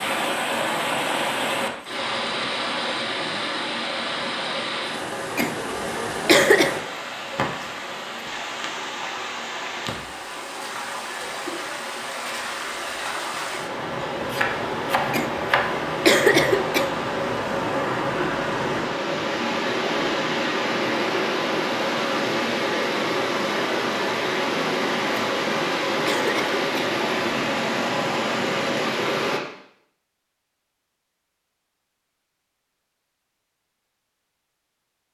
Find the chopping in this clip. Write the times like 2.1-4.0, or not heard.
14.2-15.7.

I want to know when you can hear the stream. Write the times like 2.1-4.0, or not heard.
0.0-29.4.